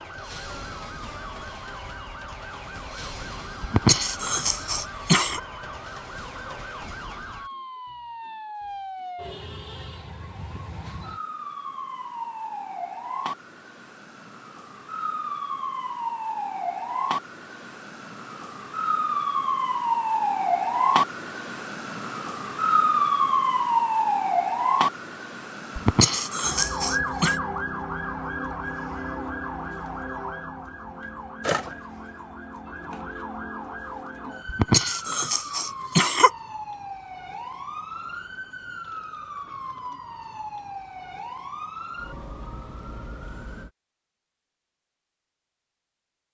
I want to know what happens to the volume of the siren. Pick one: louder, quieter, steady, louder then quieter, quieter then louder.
louder then quieter.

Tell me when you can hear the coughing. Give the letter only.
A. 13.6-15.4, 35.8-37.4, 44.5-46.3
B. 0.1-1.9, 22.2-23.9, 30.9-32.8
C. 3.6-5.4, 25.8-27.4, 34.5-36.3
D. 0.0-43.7
C.